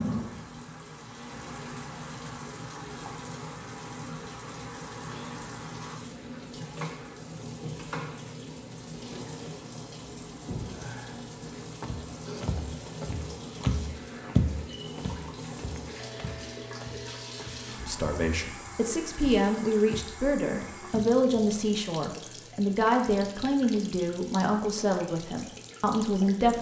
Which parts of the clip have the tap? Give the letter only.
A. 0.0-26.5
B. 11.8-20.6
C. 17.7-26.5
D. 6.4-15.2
A.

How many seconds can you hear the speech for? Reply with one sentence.
You can hear the speech for 9 seconds altogether.